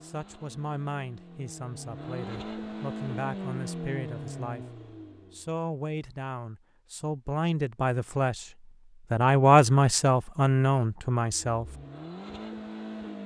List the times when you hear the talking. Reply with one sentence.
You can hear the talking from 0.0 to 4.7 s, from 5.3 to 8.5 s and from 9.1 to 11.8 s.